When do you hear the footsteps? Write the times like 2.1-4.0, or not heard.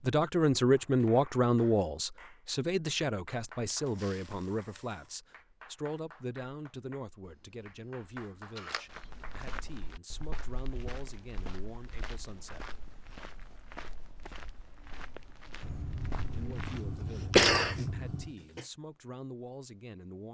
8.9-17.0.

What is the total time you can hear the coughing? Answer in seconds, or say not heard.
2 s.